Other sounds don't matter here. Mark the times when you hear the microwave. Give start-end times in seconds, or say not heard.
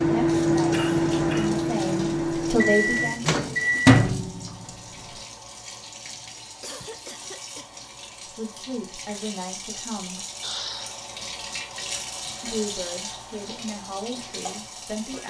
0.0-4.8.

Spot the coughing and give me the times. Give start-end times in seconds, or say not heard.
0.7-1.6, 6.6-7.7, 10.4-11.0.